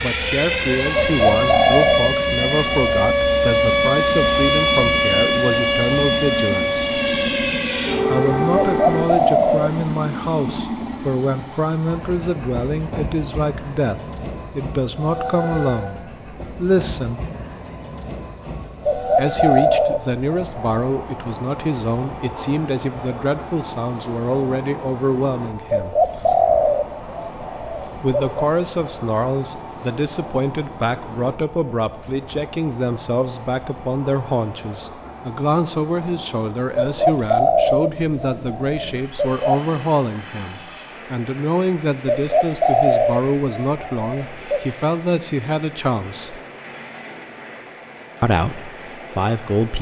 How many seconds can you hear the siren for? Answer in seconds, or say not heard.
9 s.